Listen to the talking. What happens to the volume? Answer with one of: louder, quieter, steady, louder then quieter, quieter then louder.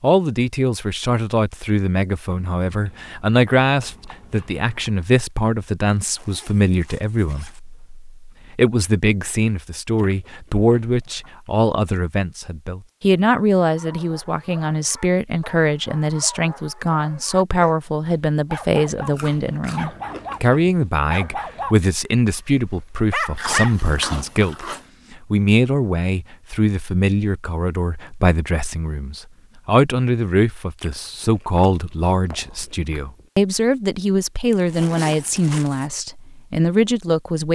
steady.